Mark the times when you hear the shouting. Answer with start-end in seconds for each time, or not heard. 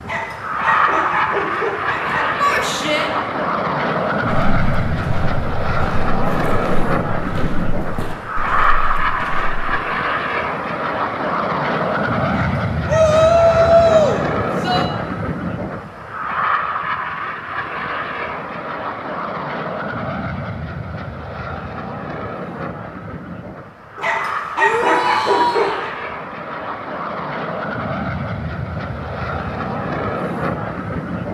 2.4-3.1, 12.8-14.8, 24.6-25.8.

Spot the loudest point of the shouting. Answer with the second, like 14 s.
14 s.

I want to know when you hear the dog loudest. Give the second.
25 s.